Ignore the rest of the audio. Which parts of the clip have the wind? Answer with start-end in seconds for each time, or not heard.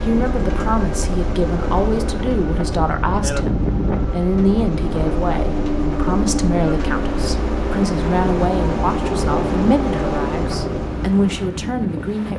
0.0-12.3.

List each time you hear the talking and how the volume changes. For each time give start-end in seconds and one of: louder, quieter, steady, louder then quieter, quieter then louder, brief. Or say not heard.
0.1-12.3 steady.